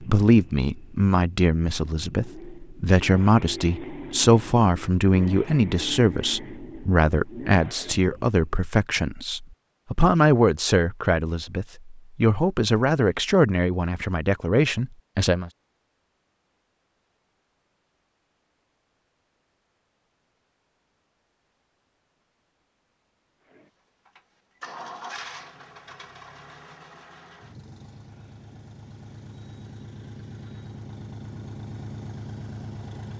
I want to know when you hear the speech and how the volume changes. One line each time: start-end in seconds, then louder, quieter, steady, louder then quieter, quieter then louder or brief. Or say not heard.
0.0-15.5 steady.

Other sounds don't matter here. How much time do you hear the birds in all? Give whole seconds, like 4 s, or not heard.
not heard.